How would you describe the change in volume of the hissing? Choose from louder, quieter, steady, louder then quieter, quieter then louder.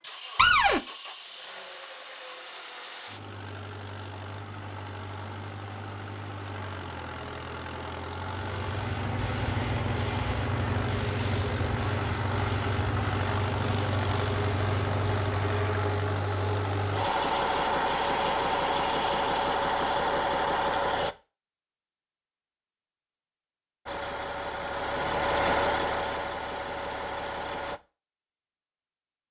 steady.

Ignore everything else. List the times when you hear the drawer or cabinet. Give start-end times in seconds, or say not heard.
0.3-0.8.